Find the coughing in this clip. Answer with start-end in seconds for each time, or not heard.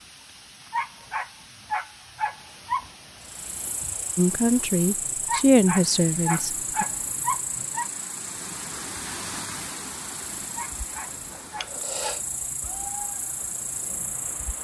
11.6-12.2.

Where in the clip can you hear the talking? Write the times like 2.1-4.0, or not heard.
4.2-6.8.